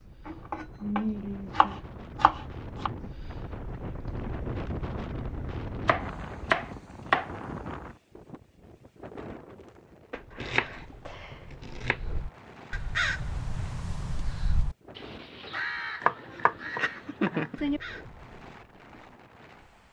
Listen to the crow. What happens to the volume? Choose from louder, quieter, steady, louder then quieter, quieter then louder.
louder then quieter.